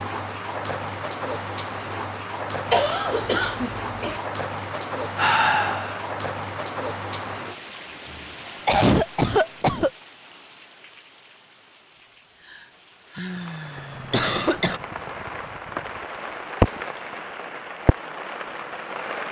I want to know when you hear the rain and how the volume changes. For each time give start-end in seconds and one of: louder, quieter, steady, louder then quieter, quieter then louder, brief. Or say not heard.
0.0-19.2 quieter then louder.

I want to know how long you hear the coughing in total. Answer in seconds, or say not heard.
4 s.